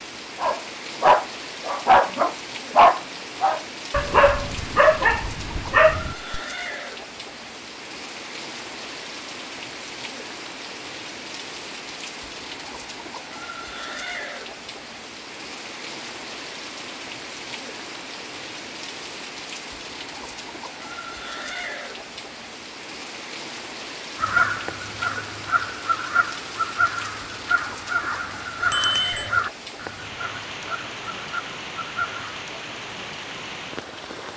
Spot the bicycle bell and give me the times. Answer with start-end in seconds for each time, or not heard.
28.7-29.3.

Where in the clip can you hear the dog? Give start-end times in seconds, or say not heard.
0.4-6.4.